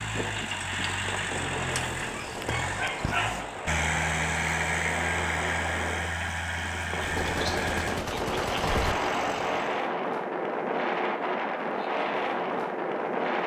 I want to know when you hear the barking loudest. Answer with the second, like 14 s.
3 s.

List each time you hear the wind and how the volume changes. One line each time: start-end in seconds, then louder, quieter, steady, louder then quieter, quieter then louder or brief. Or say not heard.
0.0-13.4 louder.